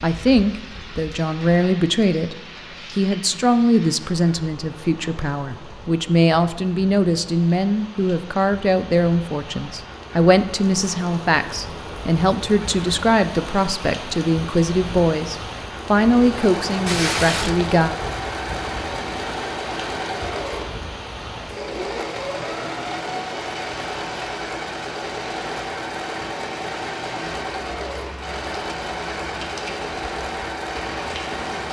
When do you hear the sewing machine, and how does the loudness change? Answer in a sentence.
You can hear the sewing machine from 16.1 to 31.6 s, at a steady volume.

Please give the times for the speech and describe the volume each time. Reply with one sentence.
You can hear the speech from 0.0 to 17.9 s, at a steady volume.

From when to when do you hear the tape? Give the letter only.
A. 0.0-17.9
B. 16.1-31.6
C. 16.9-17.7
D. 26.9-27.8
C.